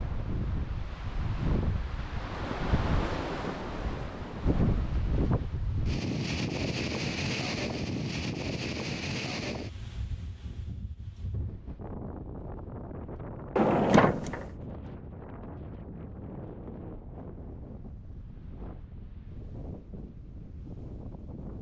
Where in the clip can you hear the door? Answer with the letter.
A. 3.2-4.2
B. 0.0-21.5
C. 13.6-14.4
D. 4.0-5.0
C.